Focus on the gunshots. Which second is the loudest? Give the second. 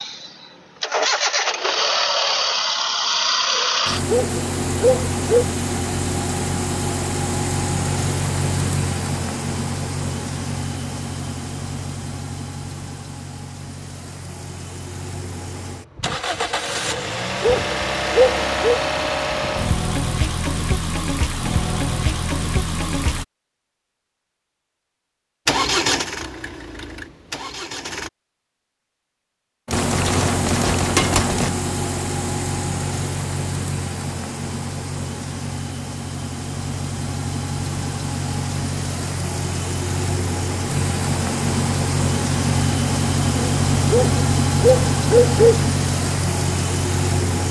31 s.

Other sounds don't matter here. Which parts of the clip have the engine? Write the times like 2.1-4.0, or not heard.
0.0-23.2, 25.4-28.1, 29.7-47.4.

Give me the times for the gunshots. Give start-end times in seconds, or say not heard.
29.6-31.5.